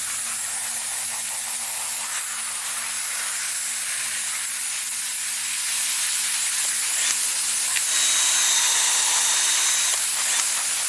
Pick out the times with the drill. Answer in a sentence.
You can hear the drill from 6.6 to 10.8 s.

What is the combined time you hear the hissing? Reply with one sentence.
The hissing can be heard for 11 seconds in total.